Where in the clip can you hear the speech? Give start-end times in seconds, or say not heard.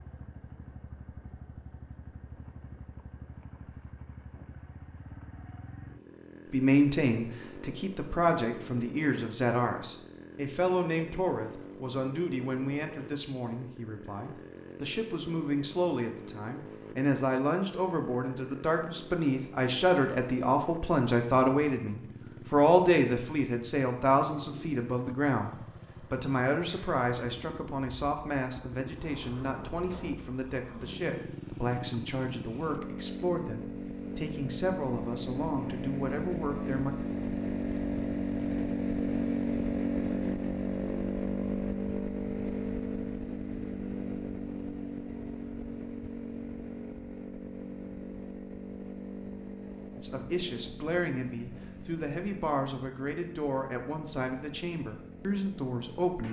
6.5-37.0, 50.0-56.2.